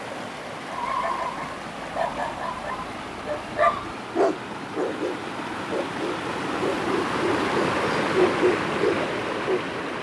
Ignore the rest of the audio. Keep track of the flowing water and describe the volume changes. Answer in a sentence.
The loudness of the flowing water goes up.